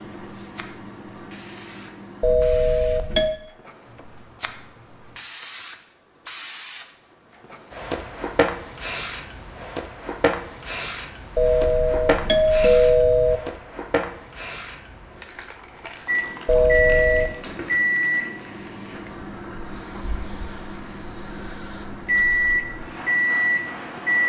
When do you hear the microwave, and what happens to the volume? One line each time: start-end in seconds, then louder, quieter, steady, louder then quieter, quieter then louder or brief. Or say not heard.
0.0-2.4 brief
16.1-24.2 quieter then louder.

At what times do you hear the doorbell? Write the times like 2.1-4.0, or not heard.
2.2-3.4, 11.3-13.4, 16.4-17.4.